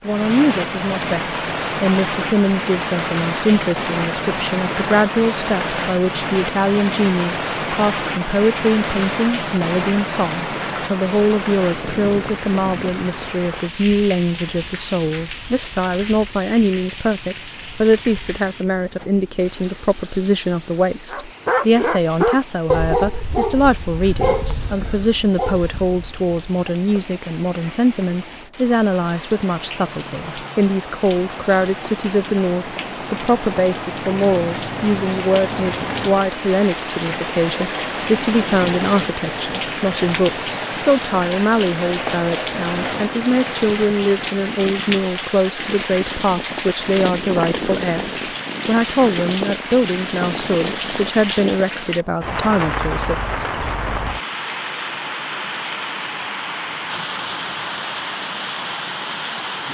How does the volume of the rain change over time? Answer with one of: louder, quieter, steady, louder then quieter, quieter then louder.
quieter then louder.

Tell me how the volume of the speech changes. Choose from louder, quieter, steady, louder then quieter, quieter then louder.
steady.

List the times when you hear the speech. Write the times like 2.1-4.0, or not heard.
0.0-53.1.